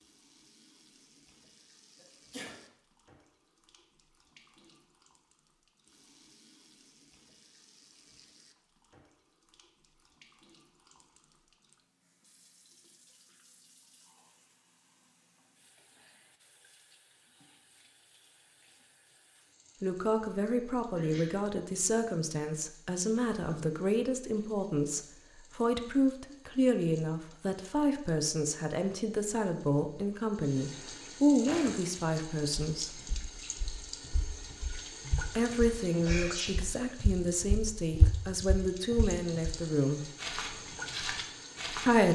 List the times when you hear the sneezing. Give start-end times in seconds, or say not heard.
1.9-2.5, 20.9-21.4, 36.0-36.5.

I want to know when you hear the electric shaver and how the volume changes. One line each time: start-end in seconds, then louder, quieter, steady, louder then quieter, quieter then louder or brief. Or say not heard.
not heard.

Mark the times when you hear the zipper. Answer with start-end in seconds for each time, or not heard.
not heard.